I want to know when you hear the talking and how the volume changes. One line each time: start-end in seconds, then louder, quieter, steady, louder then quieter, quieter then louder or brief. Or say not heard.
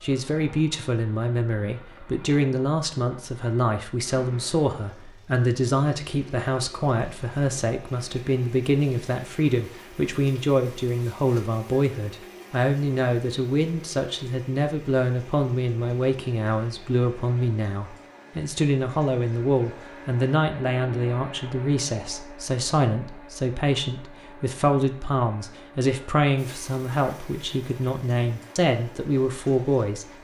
0.0-30.1 steady.